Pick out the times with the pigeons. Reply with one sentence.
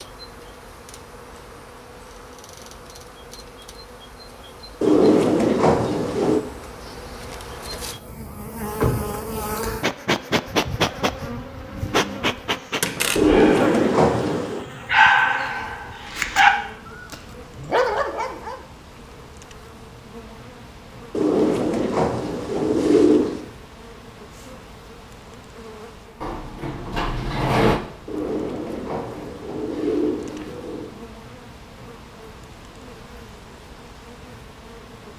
The pigeons can be heard from 4.8 to 6.4 s, from 13.2 to 14.7 s, from 21.1 to 23.4 s and from 28.1 to 31.0 s.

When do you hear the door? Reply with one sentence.
The door can be heard from 8.8 to 9.5 s, from 12.8 to 13.4 s and from 26.2 to 27.8 s.